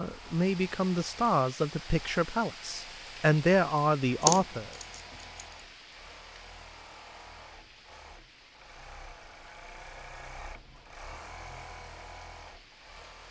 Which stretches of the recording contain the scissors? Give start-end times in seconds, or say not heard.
4.2-5.5.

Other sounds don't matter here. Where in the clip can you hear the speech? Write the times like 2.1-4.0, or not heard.
0.0-4.7.